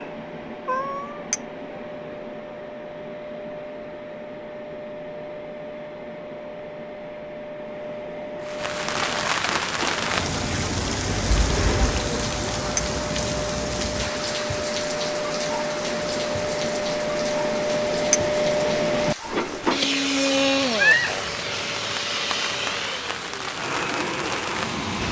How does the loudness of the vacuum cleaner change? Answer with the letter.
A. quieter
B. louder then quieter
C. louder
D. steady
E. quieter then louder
C.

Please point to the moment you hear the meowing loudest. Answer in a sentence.
The volume of the meowing peaks at 21 seconds.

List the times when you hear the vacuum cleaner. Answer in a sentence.
You can hear the vacuum cleaner from 0.0 to 25.0 s.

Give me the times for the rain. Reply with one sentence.
You can hear the rain from 8.4 to 25.0 s.